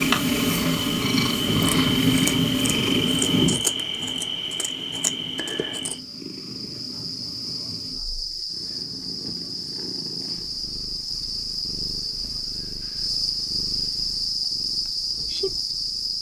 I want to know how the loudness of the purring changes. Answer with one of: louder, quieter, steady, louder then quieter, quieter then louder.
quieter.